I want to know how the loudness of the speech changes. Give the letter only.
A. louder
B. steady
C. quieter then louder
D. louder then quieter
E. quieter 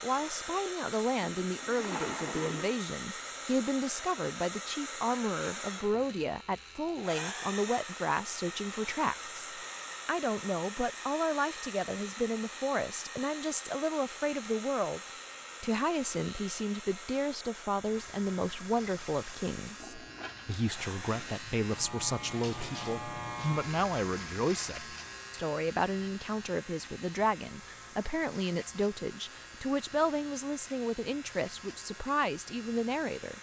B.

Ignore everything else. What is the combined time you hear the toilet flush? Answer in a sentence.
The toilet flush can be heard for 3 seconds in total.